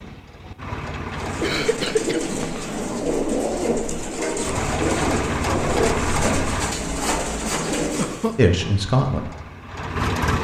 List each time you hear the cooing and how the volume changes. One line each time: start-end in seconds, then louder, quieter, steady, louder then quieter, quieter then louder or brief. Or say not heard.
1.1-8.4 steady.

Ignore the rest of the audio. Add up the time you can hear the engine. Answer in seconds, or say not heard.
6 s.